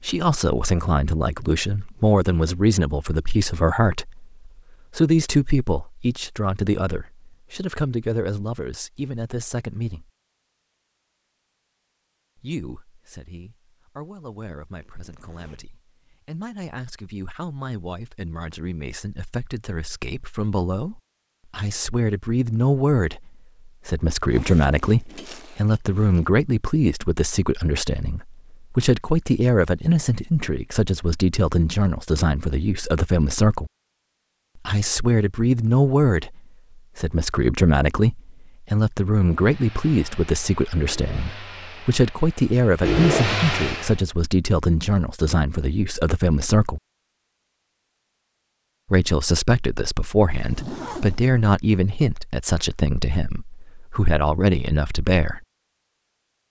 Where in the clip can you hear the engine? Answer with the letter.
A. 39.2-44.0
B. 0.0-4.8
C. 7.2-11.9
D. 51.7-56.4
A.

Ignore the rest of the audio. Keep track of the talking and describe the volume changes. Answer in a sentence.
The volume of the talking goes down, then up.